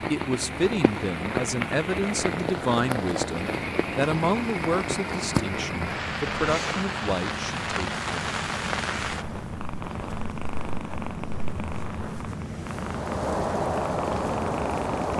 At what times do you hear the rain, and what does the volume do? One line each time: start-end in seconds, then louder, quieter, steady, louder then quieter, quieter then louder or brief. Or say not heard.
0.0-15.1 quieter then louder.